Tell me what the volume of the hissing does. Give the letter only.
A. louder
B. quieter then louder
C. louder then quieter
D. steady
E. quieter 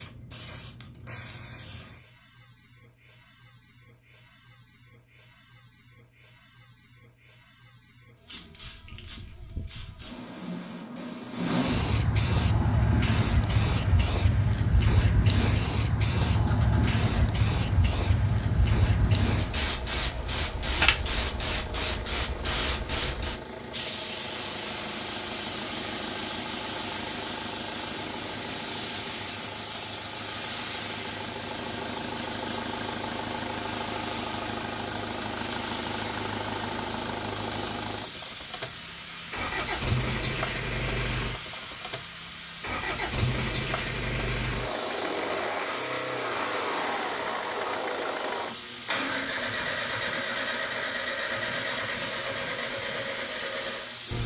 C.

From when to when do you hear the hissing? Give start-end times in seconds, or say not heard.
0.0-54.2.